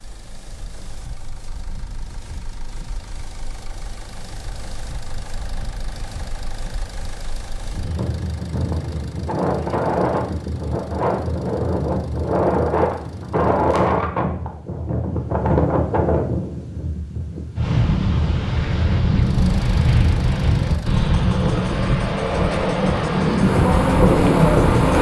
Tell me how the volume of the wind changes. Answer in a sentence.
The volume of the wind goes up.